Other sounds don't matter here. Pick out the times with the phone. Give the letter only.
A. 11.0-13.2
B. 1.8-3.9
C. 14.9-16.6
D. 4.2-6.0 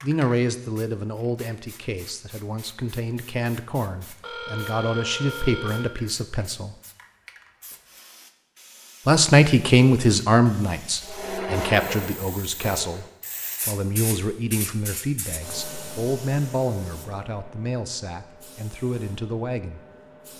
D.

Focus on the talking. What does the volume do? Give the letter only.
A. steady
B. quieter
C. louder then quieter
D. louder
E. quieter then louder
C.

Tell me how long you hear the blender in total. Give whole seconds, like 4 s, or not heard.
2 s.